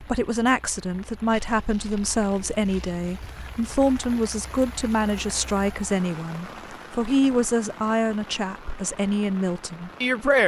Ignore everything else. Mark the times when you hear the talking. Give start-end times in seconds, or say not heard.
0.0-10.4.